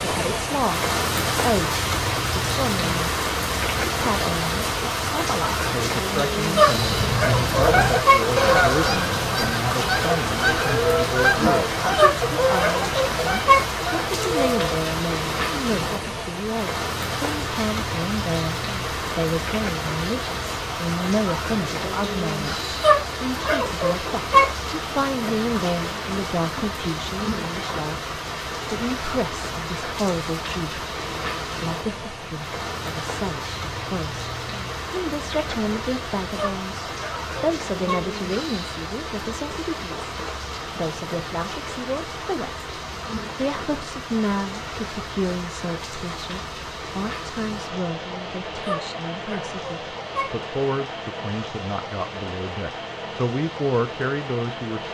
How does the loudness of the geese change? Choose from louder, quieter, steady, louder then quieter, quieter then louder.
quieter.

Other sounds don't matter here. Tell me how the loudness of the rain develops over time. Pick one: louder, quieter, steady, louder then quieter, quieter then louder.
quieter.